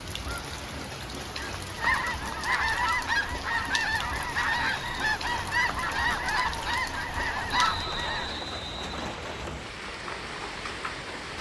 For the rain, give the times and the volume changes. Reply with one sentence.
The rain can be heard from 0.0 to 11.3 s, at a steady volume.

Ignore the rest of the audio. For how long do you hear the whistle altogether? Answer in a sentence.
You can hear the whistle for 2 seconds altogether.